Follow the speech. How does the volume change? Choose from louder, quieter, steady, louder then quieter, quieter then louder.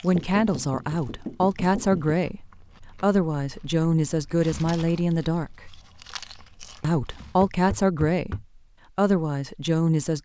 steady.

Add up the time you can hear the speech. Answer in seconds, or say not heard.
9 s.